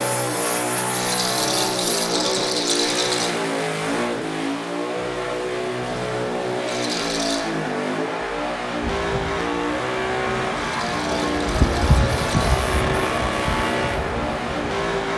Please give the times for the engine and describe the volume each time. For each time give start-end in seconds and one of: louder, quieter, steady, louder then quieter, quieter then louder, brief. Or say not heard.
0.0-15.1 steady.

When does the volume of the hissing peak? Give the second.
12 s.